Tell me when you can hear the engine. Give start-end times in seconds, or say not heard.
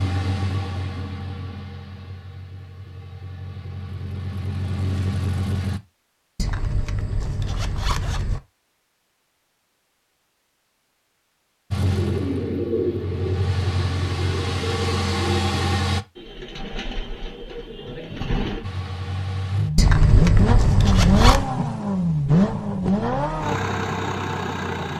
0.0-5.8, 11.7-16.1, 18.6-24.9.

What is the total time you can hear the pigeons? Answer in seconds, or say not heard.
7 s.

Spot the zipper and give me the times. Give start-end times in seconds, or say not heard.
6.3-8.4, 19.8-21.4.